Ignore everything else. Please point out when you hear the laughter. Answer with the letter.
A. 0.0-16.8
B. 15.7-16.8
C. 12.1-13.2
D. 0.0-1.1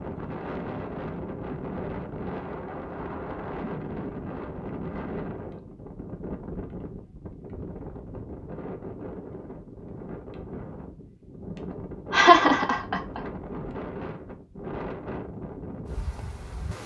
C.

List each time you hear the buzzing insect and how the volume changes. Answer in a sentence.
You can't hear the buzzing insect here.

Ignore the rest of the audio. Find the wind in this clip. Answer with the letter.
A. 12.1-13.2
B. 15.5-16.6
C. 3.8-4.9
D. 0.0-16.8
D.